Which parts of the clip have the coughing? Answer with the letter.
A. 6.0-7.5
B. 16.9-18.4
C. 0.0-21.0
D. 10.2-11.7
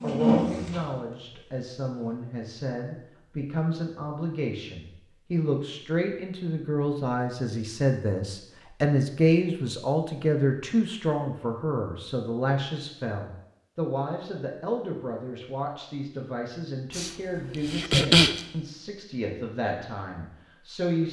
B.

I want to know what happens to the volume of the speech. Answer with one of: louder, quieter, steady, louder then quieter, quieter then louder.
louder then quieter.